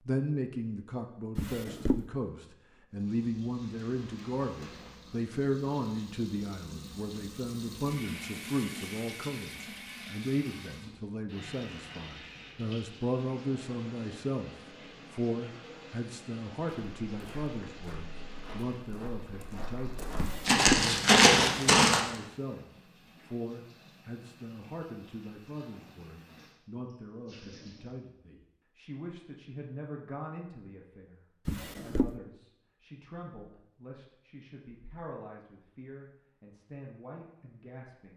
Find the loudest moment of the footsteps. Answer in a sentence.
The volume of the footsteps peaks at 21 seconds.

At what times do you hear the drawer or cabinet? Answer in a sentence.
The drawer or cabinet can be heard from 1.4 to 2.0 s, from 20.1 to 20.9 s and from 31.4 to 32.1 s.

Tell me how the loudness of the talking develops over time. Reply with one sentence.
The loudness of the talking goes down.